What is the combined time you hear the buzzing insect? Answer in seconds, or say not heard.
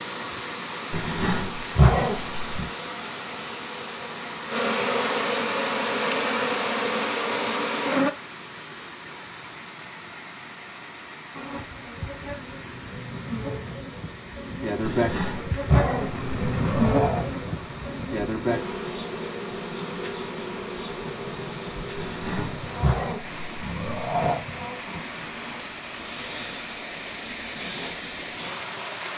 26 s.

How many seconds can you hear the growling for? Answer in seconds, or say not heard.
7 s.